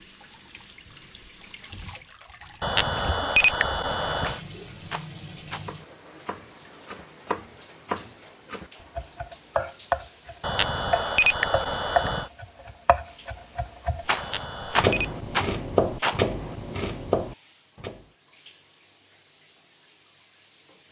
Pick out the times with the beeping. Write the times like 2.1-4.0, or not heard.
2.6-4.4, 10.4-12.3, 14.2-15.2.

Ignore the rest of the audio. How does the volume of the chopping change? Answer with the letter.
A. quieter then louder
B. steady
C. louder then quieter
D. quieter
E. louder
E.